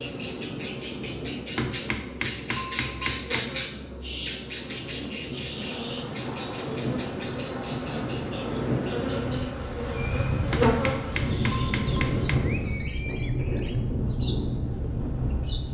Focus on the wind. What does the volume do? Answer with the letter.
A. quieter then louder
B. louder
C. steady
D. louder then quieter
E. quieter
B.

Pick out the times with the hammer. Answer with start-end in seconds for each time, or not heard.
1.6-3.4, 10.5-12.3.